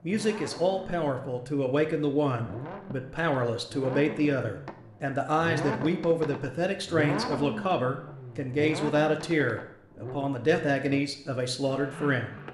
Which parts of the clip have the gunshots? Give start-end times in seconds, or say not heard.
not heard.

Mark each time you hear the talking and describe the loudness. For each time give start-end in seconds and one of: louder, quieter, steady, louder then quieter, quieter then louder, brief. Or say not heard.
0.0-12.3 steady.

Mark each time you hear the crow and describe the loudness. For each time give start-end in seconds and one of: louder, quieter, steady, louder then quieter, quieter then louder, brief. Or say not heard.
not heard.